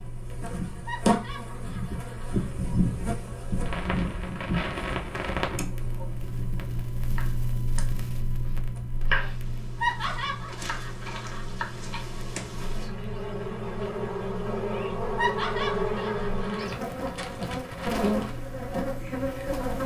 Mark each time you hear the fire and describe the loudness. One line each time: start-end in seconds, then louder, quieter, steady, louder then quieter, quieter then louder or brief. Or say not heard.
0.0-19.8 louder then quieter.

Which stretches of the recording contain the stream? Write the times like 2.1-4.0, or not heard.
not heard.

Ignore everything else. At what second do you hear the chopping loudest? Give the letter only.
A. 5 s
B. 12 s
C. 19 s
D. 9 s
D.